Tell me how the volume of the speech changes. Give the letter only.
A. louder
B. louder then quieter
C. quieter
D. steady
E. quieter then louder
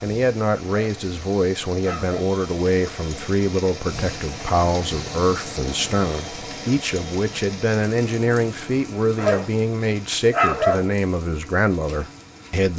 D.